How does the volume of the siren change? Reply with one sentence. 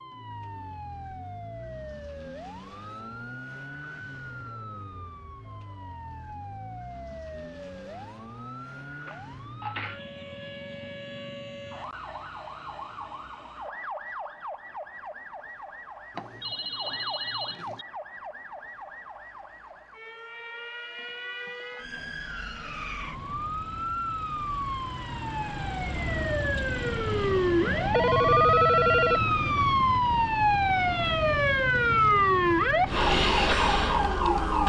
The loudness of the siren goes up.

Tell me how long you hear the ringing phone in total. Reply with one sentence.
The ringing phone can be heard for 4 seconds in total.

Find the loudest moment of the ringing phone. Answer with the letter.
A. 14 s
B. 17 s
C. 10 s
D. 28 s
D.